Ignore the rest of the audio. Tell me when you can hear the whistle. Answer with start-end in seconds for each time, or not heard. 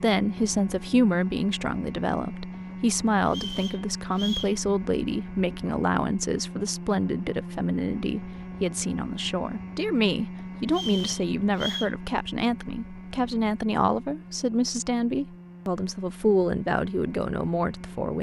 3.2-4.5, 10.7-11.9.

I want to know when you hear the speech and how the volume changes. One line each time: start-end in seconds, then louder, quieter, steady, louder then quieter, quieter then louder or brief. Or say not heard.
0.0-18.1 steady.